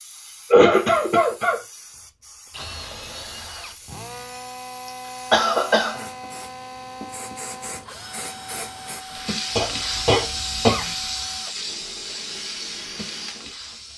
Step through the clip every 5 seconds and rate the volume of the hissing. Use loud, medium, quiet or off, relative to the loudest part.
quiet, loud, loud.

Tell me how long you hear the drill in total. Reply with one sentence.
The drill can be heard for 12 seconds in total.